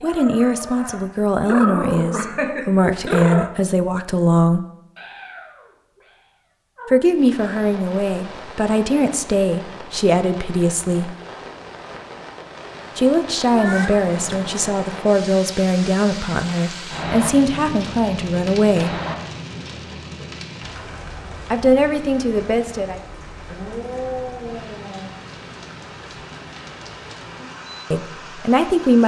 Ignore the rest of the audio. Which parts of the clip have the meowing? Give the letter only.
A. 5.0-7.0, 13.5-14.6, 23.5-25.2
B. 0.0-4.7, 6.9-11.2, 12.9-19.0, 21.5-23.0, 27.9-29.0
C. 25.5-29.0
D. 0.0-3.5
A.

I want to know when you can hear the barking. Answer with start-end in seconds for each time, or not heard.
0.0-3.5.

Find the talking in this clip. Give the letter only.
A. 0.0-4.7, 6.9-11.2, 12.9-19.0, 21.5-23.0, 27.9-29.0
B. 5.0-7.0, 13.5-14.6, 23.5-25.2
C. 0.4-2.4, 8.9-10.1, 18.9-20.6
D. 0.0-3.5
A.